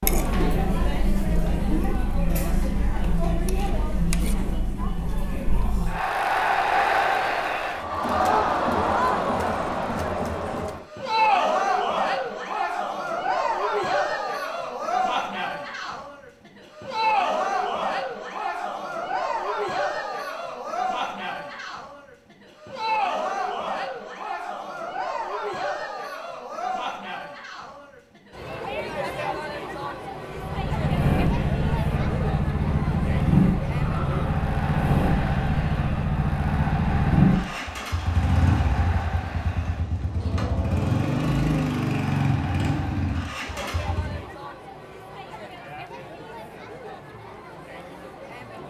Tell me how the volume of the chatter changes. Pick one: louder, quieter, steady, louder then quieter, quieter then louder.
quieter.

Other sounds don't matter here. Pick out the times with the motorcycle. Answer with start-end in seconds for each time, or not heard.
30.3-44.2.